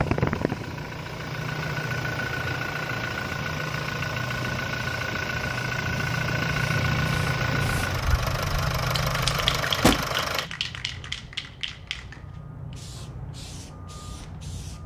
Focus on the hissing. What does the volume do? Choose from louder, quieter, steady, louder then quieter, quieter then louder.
louder then quieter.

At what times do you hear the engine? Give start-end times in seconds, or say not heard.
0.0-10.5.